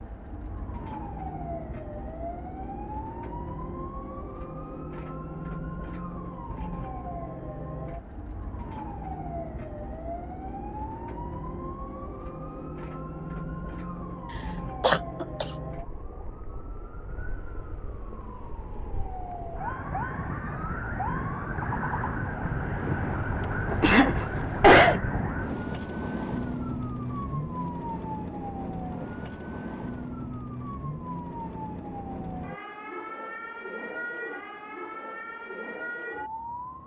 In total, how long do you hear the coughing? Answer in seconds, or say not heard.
2 s.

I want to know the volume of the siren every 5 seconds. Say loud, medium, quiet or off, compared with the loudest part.
medium, medium, medium, medium, loud, loud, medium, medium.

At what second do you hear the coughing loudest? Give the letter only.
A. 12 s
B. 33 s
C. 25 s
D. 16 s
C.